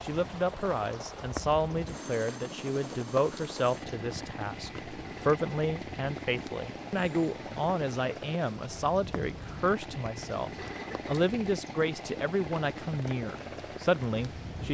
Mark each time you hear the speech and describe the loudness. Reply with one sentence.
You can hear the speech from 0.0 to 14.6 s, at a steady volume.